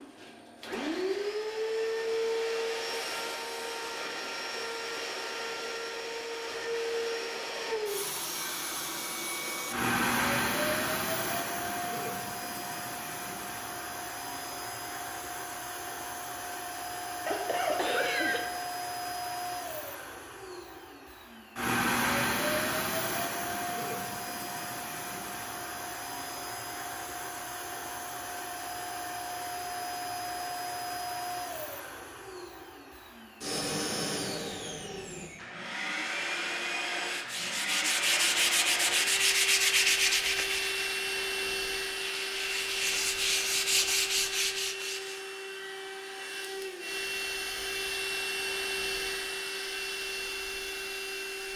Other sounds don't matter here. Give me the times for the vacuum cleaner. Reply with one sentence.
You can hear the vacuum cleaner from 0.0 to 51.5 s.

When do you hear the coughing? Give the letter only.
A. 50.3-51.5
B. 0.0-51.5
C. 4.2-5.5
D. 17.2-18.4
D.